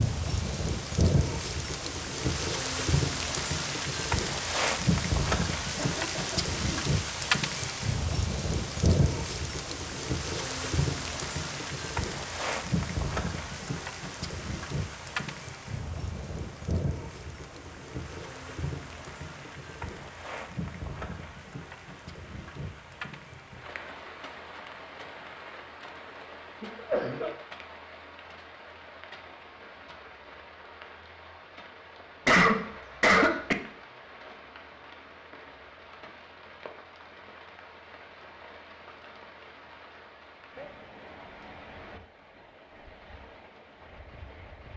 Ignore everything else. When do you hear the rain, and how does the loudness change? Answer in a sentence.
The rain can be heard from 0.0 to 44.7 s, getting quieter.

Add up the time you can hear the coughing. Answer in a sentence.
The coughing can be heard for 3 seconds in total.